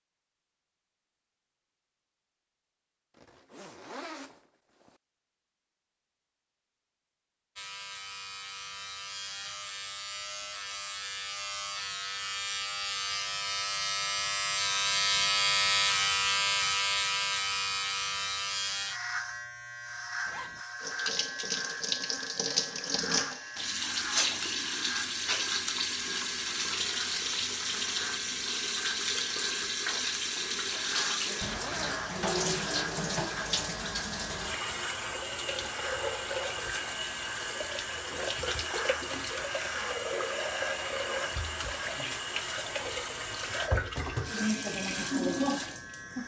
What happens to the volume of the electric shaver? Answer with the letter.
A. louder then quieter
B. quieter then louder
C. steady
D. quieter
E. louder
D.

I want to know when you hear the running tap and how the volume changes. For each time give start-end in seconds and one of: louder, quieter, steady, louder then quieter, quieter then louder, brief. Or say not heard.
20.8-46.2 steady.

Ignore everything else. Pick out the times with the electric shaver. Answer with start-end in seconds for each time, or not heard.
7.5-46.2.